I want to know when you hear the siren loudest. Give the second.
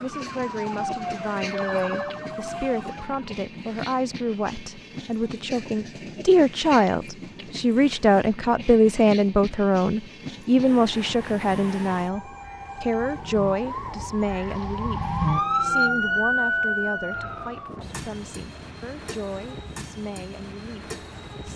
16 s.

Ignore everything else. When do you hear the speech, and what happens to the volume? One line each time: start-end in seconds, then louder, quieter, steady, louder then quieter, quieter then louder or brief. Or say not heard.
0.0-21.5 louder then quieter.